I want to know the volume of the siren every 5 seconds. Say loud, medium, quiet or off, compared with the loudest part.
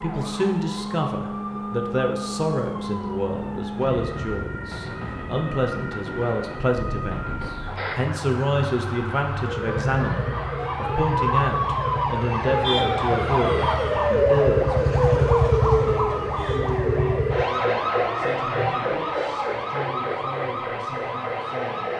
medium, medium, loud, loud, medium.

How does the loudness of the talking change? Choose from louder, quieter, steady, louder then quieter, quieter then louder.
quieter.